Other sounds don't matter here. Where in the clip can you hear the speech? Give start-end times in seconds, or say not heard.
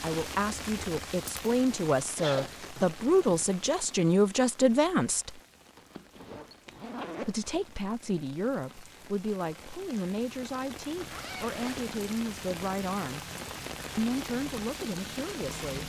0.0-5.4, 7.2-13.2, 13.9-15.8.